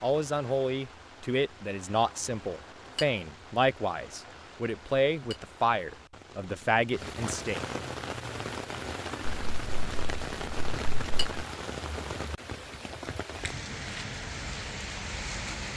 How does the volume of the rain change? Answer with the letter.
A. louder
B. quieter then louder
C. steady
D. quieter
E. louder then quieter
A.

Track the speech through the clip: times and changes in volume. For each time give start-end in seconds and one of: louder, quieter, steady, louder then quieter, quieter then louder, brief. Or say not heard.
0.0-7.6 steady.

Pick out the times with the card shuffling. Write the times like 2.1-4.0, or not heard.
9.2-11.4.